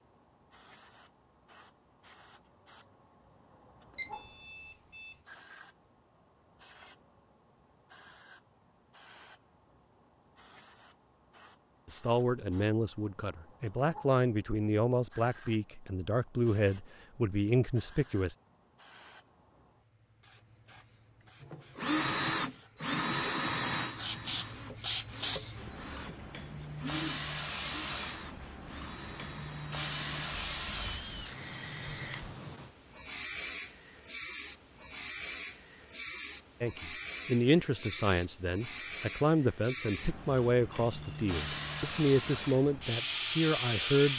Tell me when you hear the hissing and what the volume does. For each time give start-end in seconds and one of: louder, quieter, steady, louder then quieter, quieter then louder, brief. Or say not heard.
0.0-44.1 louder.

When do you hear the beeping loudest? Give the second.
4 s.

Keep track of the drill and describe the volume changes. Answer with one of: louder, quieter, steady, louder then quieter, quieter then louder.
quieter.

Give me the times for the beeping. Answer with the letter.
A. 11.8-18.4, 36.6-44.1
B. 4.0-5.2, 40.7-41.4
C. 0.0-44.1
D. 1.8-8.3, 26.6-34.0
B.